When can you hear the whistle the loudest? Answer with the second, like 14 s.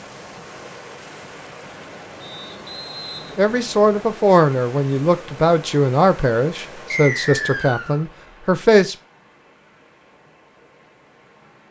7 s.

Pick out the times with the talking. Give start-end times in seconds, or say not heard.
3.4-8.9.